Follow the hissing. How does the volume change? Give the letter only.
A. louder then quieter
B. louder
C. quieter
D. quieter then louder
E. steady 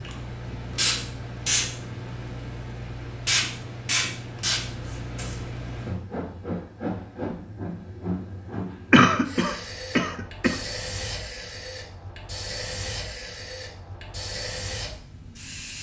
C.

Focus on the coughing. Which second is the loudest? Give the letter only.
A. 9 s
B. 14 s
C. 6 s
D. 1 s
A.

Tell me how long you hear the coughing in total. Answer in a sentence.
The coughing can be heard for 2 seconds in total.